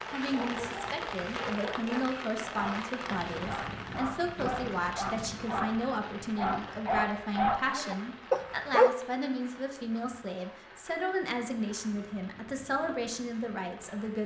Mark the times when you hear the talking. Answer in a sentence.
You can hear the talking from 0.1 to 14.2 s.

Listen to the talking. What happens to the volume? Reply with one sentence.
The loudness of the talking stays about the same.